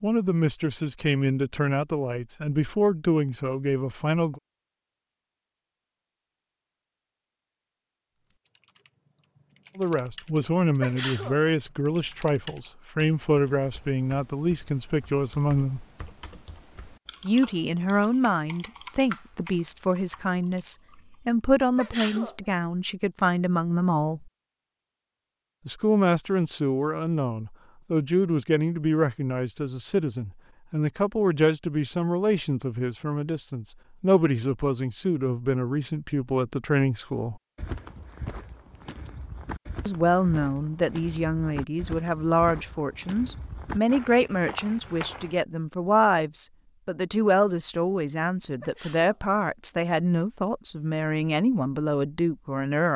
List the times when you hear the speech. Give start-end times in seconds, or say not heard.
0.0-4.4, 9.8-15.8, 17.2-24.3, 25.6-37.4, 39.9-52.9.